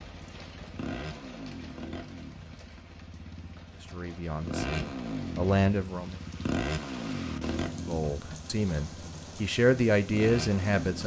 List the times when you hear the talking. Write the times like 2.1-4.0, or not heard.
3.8-6.2, 7.7-11.0.